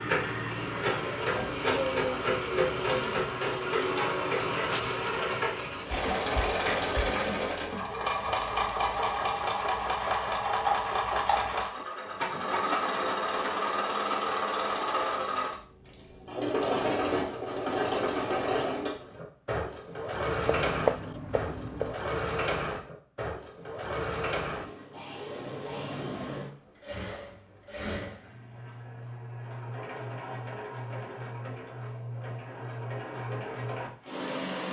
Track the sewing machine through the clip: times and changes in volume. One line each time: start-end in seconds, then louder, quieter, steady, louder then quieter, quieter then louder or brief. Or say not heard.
0.0-34.6 quieter.